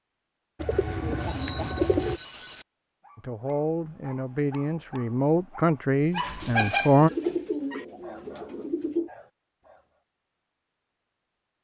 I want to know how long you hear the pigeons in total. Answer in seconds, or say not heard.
4 s.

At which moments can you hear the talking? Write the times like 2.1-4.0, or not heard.
3.1-7.1.